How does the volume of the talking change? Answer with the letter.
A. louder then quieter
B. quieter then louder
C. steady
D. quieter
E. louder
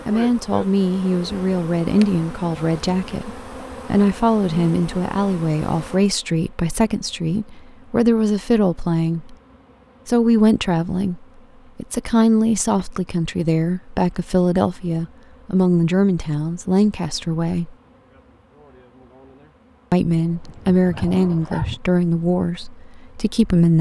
C.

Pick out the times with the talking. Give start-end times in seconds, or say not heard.
0.1-9.3, 10.1-17.8, 19.9-23.7.